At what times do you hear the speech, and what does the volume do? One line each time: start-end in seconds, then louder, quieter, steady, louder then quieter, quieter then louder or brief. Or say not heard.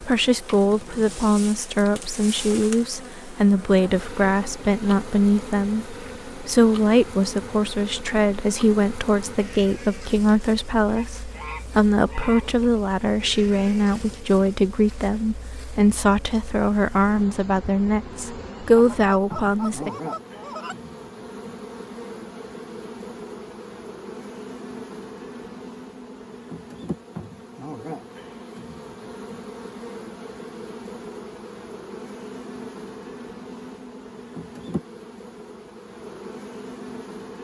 0.0-19.9 steady.